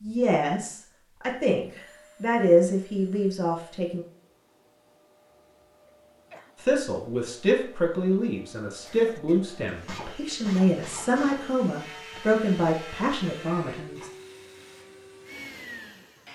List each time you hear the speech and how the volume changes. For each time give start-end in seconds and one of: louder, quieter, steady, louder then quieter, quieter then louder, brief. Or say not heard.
0.0-4.0 louder then quieter
6.6-14.1 steady.